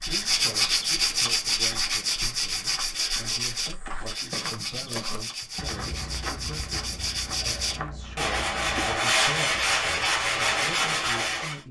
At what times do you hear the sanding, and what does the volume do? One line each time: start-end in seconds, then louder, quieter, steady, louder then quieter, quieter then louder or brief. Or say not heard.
0.0-11.6 quieter then louder.